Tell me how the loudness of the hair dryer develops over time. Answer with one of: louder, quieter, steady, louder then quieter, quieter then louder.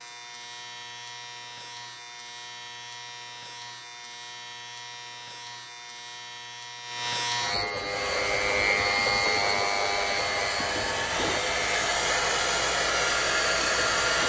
louder.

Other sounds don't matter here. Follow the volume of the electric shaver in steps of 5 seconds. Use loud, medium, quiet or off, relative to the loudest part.
quiet, loud, loud.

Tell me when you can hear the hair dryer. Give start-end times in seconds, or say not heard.
7.8-14.2.